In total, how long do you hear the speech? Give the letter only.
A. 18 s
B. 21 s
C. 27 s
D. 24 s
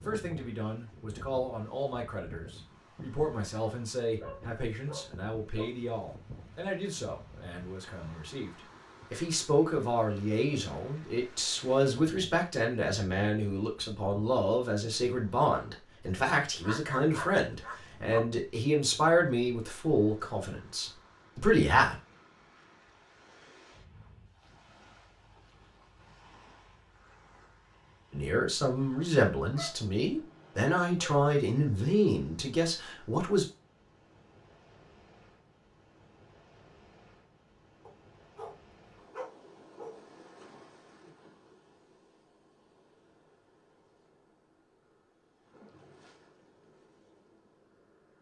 C.